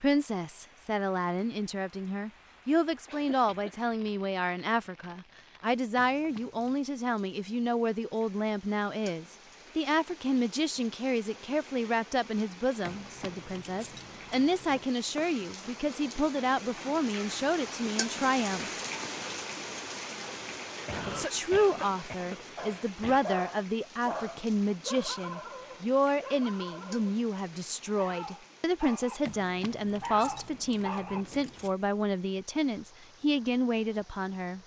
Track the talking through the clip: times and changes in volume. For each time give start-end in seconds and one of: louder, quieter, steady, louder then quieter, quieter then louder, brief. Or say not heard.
0.0-18.7 steady
21.1-34.6 steady.